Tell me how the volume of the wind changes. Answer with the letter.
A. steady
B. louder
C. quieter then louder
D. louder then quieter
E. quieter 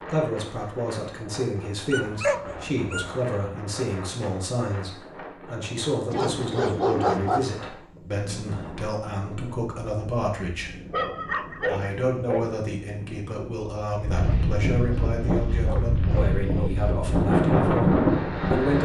B.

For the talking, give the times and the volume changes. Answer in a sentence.
The talking can be heard from 0.1 to 10.9 s, at a steady volume; and from 11.7 to 18.8 s, at a steady volume.